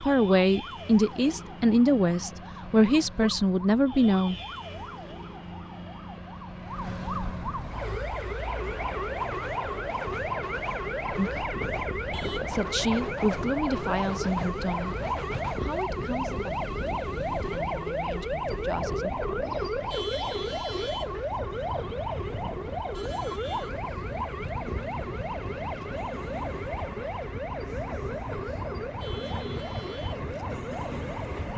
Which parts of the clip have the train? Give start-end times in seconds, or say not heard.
7.7-31.5.